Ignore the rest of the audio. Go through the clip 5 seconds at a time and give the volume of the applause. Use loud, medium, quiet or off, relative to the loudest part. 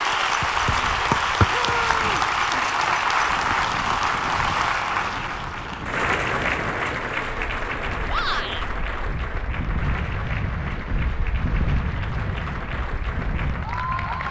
loud, medium, medium.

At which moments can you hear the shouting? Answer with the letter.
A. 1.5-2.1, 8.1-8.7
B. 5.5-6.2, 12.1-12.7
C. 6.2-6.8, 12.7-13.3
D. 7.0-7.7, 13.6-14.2
A.